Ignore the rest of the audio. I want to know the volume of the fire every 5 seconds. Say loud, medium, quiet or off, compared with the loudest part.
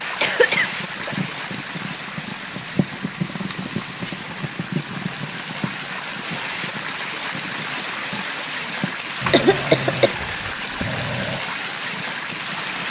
loud, medium, medium.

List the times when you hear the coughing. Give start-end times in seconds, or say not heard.
0.2-1.1, 8.8-10.2.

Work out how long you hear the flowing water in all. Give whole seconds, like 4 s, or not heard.
13 s.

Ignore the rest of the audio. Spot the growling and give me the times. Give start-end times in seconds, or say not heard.
9.2-11.4.